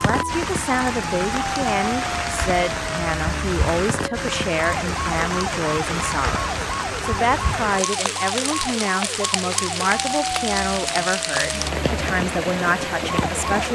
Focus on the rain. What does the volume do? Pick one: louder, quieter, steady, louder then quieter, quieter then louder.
steady.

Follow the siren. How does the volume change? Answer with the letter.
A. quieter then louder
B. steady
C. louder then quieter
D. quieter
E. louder
B.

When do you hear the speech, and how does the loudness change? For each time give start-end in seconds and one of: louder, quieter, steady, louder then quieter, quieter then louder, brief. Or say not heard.
0.0-13.7 steady.